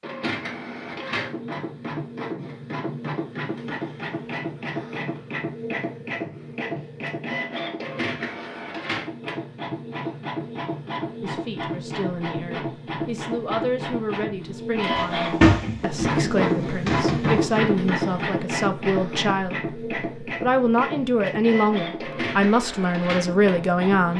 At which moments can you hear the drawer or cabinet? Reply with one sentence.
The drawer or cabinet can be heard from 14.9 to 17.5 s.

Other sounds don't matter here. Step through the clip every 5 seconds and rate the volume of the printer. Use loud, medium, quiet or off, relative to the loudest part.
medium, medium, medium, loud, medium.